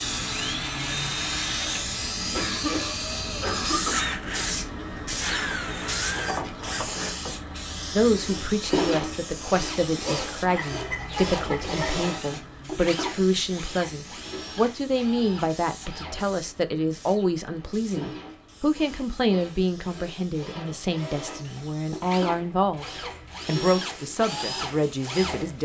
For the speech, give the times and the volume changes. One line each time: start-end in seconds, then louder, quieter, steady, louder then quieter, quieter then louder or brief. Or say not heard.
7.9-22.9 steady
23.4-25.6 brief.